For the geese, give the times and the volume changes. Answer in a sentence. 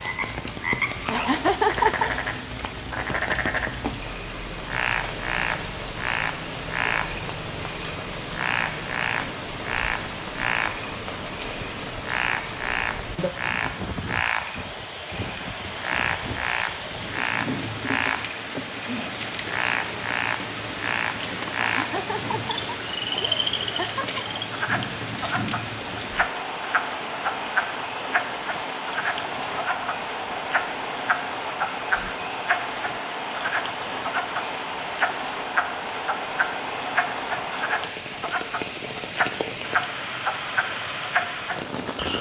You can't hear the geese here.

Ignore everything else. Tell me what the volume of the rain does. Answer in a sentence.
The volume of the rain stays about the same.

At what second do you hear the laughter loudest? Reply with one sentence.
The volume of the laughter peaks at 2 seconds.